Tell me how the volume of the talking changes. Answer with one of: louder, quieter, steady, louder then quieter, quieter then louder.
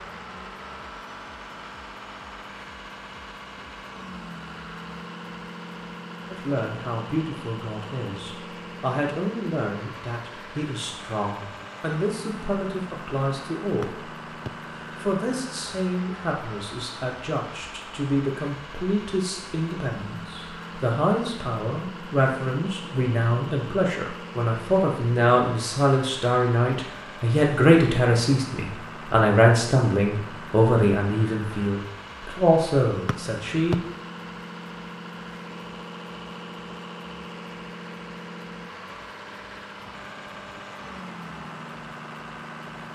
louder.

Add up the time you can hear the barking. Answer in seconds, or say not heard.
not heard.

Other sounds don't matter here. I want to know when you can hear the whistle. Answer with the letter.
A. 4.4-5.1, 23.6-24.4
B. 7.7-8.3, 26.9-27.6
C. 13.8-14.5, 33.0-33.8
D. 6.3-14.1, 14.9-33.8
C.